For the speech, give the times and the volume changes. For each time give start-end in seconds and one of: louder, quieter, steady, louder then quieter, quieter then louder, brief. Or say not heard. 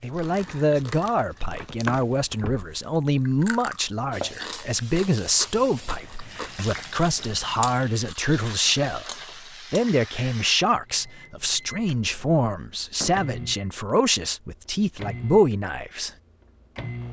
0.0-16.1 steady.